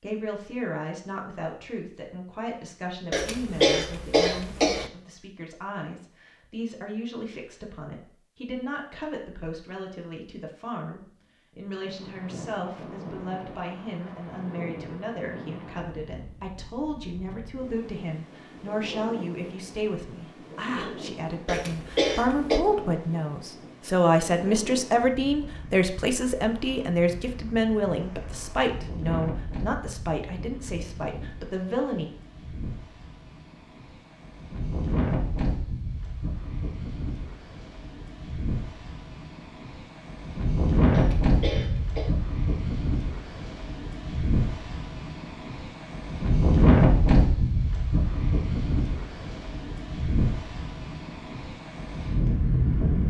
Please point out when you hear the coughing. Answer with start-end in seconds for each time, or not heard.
3.1-4.9, 21.4-22.6, 40.9-42.1.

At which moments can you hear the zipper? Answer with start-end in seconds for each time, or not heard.
not heard.